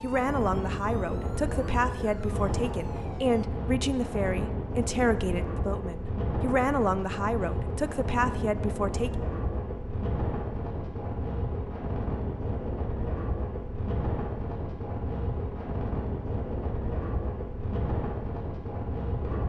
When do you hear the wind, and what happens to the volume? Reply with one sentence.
The wind can be heard from 0.0 to 19.4 s, at a steady volume.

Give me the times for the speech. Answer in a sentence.
You can hear the speech from 0.0 to 9.1 s.